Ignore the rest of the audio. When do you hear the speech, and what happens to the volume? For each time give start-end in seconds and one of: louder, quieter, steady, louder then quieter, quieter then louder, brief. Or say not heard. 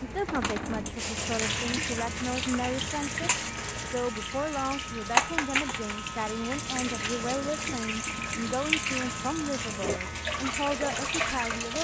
0.0-11.7 steady.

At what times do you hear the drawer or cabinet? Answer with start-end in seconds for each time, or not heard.
0.2-1.1.